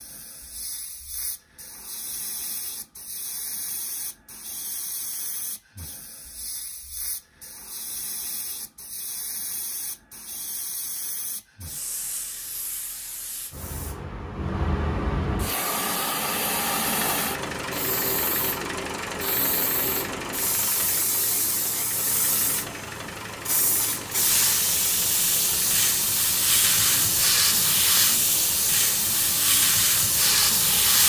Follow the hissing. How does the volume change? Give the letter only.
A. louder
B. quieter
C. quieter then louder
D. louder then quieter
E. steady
A.